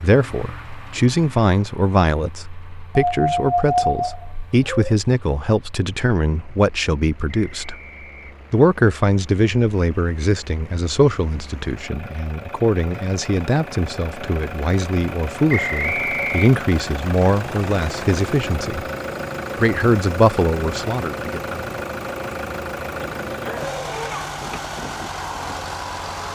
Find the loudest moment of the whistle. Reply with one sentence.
The volume of the whistle peaks at 16 seconds.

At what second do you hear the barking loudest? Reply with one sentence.
The loudest moment of the barking is at 4 seconds.